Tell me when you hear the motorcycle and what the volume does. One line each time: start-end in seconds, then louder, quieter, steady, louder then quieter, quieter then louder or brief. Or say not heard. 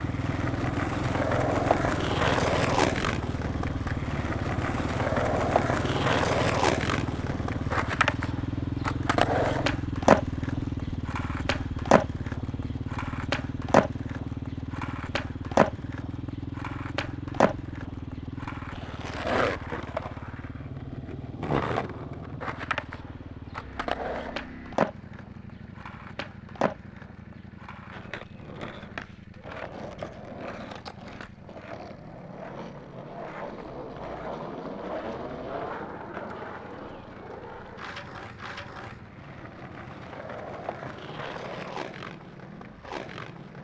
0.0-43.6 quieter.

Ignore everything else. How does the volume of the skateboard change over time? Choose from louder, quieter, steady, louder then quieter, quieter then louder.
quieter.